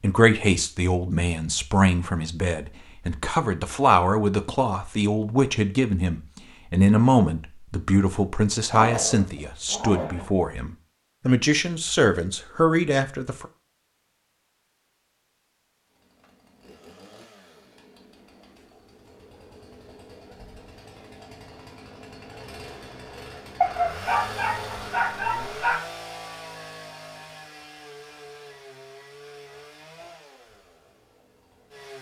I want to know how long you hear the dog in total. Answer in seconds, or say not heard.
4 s.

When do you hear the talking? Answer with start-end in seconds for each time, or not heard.
0.0-13.4.